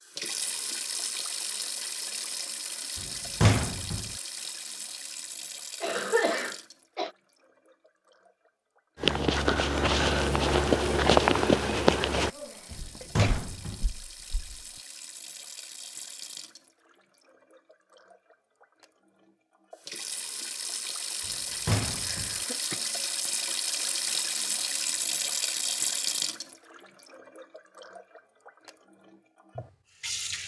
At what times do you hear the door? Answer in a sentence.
The door can be heard from 3.0 to 4.1 s, from 12.7 to 13.8 s and from 21.2 to 22.4 s.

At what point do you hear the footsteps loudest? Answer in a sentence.
The volume of the footsteps peaks at 11 seconds.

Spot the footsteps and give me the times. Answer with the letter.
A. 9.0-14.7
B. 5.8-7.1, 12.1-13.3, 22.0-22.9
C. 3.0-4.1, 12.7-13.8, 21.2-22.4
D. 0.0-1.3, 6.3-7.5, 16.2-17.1
A.